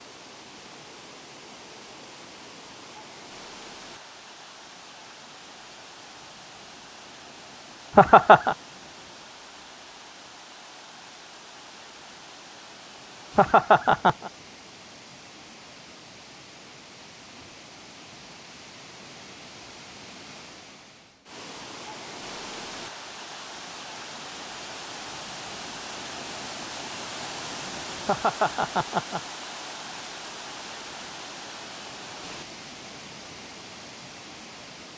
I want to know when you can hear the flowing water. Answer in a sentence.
You can hear the flowing water from 0.0 to 34.9 s.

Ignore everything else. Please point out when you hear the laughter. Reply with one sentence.
You can hear the laughter from 8.0 to 8.6 s, from 13.3 to 14.3 s and from 28.1 to 29.2 s.